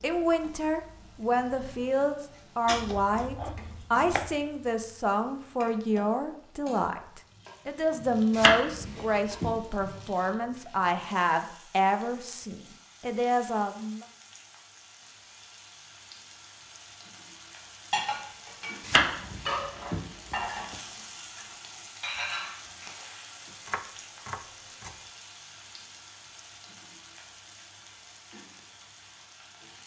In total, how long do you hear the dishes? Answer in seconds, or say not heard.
5 s.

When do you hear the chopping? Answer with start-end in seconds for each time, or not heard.
2.6-4.3, 8.3-9.8, 18.8-20.8, 23.4-24.9.